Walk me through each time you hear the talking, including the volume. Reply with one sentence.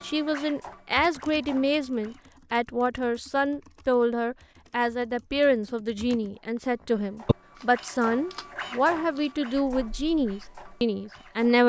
The talking can be heard from 0.0 to 11.6 s, at a steady volume.